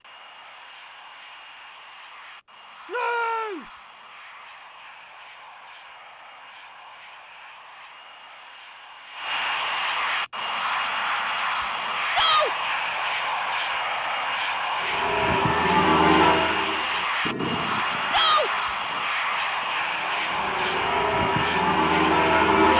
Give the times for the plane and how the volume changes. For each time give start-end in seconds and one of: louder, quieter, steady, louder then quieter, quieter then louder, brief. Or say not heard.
0.0-22.7 louder.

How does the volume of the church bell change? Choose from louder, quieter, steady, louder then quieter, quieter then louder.
quieter then louder.